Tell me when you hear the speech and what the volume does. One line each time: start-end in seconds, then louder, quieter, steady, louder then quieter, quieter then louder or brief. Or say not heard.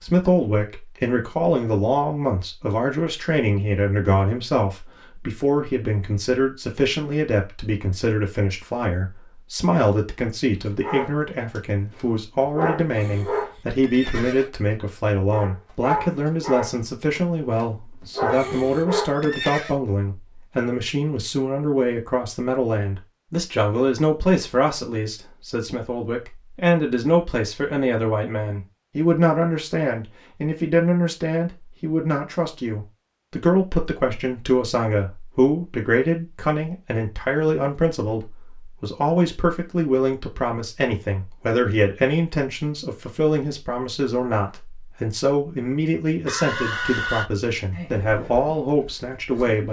0.0-49.6 steady.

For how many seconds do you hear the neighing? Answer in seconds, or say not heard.
4 s.